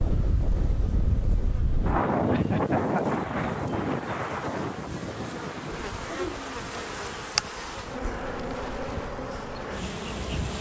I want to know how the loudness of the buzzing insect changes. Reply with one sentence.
The volume of the buzzing insect goes up.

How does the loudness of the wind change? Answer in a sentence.
The loudness of the wind goes down.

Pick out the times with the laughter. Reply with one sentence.
You can hear the laughter from 2.3 to 3.2 s and from 6.0 to 6.6 s.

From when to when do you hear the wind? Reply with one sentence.
You can hear the wind from 0.0 to 10.5 s.